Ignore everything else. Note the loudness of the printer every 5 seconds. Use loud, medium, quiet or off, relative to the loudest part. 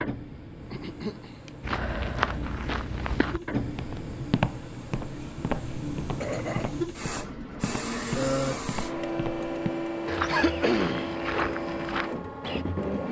medium, loud, loud.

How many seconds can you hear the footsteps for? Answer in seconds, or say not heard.
11 s.